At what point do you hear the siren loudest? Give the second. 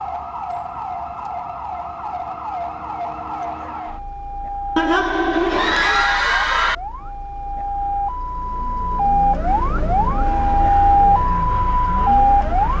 11 s.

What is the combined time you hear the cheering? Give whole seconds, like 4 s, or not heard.
2 s.